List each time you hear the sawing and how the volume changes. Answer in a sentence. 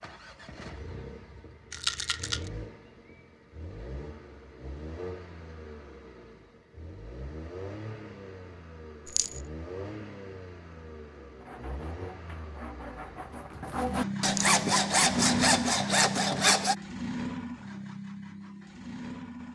You can hear the sawing from 11.4 to 16.8 s, getting louder.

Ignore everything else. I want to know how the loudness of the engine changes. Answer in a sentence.
The volume of the engine goes up.